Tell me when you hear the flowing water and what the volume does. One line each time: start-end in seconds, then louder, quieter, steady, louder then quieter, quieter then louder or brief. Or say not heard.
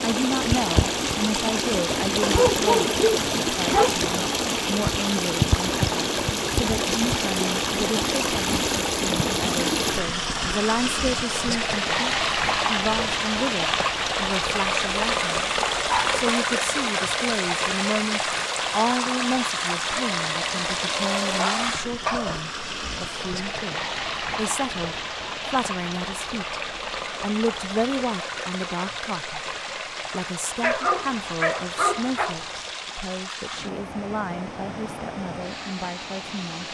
0.0-36.7 quieter.